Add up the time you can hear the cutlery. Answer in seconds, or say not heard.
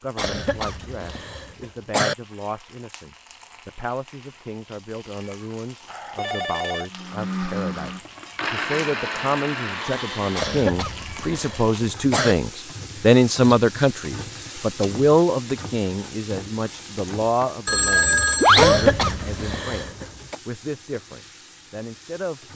not heard.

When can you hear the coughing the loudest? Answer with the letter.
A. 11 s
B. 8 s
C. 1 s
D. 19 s
D.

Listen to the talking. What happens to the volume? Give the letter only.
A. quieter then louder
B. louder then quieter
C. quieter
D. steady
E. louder
B.